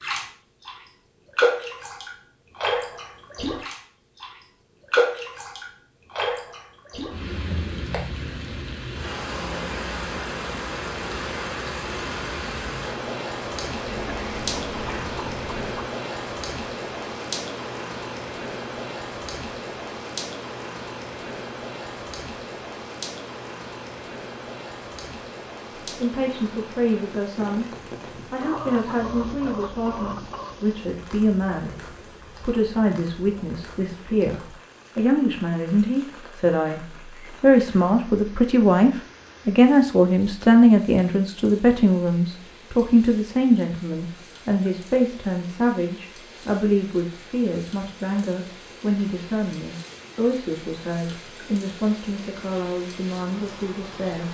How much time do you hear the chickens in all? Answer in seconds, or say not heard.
4 s.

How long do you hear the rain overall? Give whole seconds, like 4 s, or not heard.
54 s.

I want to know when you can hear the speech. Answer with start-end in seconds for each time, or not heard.
25.9-27.6, 28.3-31.8, 32.4-54.2.